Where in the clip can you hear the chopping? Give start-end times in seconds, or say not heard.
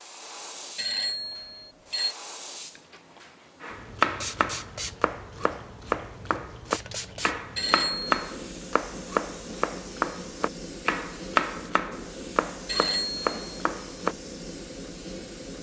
3.6-14.2.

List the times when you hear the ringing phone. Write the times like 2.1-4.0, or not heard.
0.8-2.1, 7.5-8.2, 12.7-13.4.